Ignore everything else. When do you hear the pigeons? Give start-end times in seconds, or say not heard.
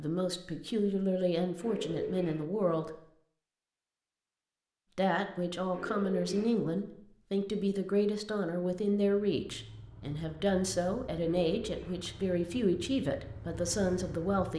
1.6-2.5, 5.7-6.6, 11.2-12.1.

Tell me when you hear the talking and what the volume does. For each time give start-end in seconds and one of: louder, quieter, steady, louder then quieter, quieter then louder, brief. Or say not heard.
0.0-2.9 brief
5.0-14.5 steady.